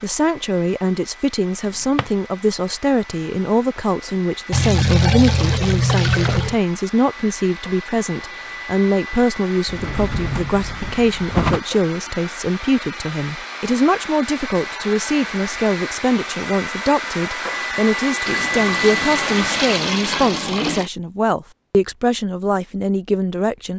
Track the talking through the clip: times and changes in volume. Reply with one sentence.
You can hear the talking from 0.0 to 23.7 s, at a steady volume.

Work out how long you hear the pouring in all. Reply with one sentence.
You can hear the pouring for 5 seconds altogether.